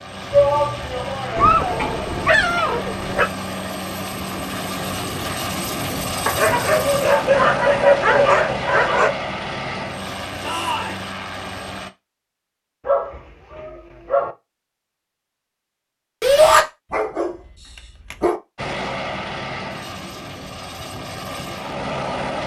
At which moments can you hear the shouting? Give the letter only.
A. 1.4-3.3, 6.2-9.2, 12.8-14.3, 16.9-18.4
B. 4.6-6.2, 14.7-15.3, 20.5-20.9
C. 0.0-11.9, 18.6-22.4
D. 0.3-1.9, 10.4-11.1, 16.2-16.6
D.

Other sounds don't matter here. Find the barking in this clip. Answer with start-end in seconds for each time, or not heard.
1.4-3.3, 6.2-9.2, 12.8-14.3, 16.9-18.4.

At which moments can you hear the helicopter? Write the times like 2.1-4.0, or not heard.
0.0-11.9, 18.6-22.4.